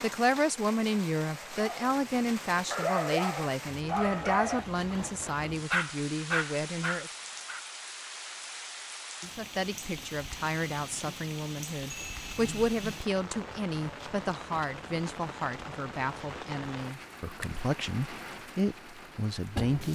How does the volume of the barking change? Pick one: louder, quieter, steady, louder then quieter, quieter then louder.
louder.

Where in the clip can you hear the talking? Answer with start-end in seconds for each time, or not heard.
0.0-7.2, 9.3-19.8.